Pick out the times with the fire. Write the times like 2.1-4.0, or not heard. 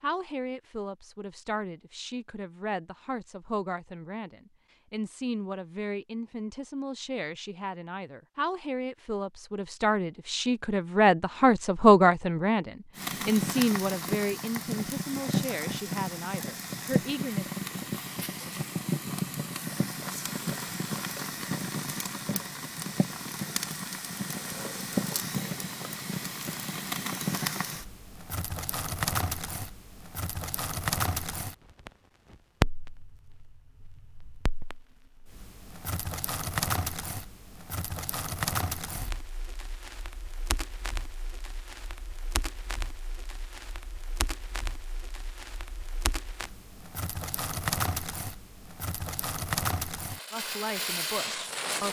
12.9-51.8.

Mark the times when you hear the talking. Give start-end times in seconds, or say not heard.
0.0-17.5, 50.3-51.8.